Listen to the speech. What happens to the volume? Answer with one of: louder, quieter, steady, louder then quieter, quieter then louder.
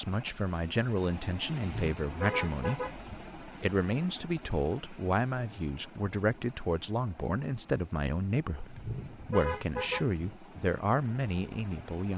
steady.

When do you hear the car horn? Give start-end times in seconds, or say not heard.
1.6-3.2, 8.8-10.3.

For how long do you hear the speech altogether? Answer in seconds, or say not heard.
12 s.